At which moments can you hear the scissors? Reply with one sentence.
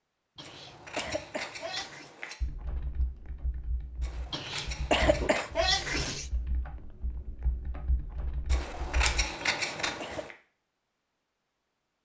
The scissors can be heard from 0.4 to 2.4 s, from 4.0 to 5.8 s and from 8.5 to 10.3 s.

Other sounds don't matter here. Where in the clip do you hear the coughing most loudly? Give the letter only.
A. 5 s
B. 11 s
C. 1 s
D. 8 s
A.